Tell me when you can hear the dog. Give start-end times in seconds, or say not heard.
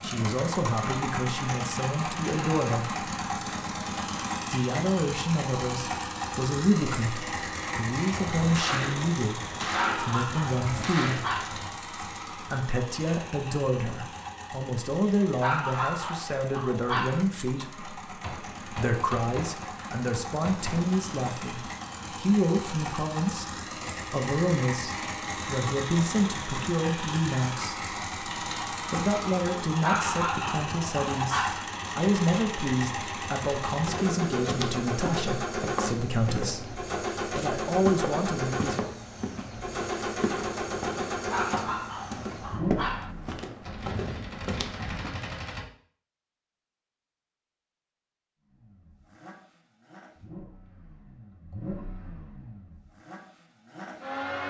9.8-11.6, 15.4-17.2, 29.8-31.6, 41.3-43.1.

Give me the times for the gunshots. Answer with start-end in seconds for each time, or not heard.
8.1-11.7, 18.2-22.1, 43.6-45.6.